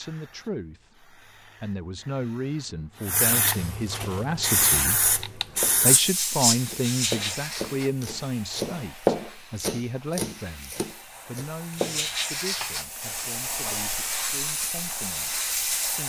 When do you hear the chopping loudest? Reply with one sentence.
The volume of the chopping peaks at 9 seconds.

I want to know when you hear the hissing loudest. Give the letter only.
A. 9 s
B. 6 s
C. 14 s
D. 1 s
B.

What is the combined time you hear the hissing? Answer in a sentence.
The hissing can be heard for 16 seconds in total.